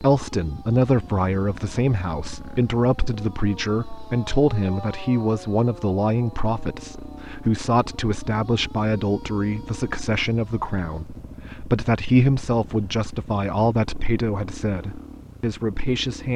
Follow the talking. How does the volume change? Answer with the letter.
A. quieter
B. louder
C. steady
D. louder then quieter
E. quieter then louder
C.